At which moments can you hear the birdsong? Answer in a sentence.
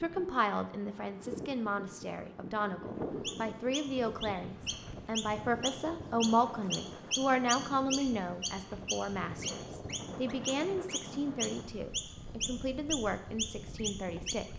You can hear the birdsong from 3.2 to 14.5 s.